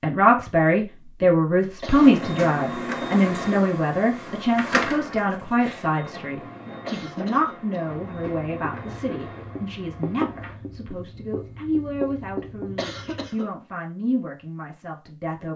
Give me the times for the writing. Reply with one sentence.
The writing can be heard from 8.1 to 13.3 s.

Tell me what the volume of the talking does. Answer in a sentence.
The loudness of the talking goes down.